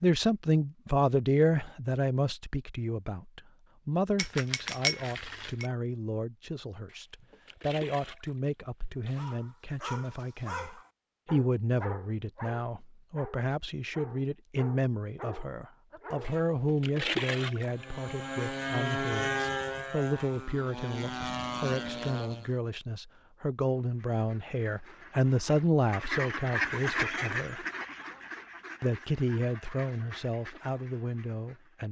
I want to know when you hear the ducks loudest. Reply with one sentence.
The volume of the ducks peaks at 27 seconds.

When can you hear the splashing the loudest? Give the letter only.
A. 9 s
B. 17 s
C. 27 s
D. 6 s
B.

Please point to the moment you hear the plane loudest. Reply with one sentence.
The volume of the plane peaks at 19 seconds.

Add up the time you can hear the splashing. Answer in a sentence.
The splashing can be heard for 4 seconds in total.